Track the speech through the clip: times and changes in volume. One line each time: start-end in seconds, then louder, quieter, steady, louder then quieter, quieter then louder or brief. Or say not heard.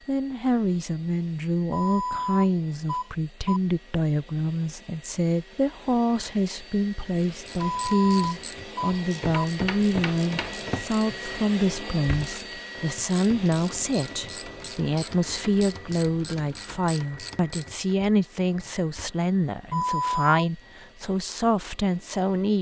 0.1-22.5 steady.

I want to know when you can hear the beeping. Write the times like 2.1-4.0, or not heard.
1.7-3.6, 7.8-9.4, 19.7-20.4.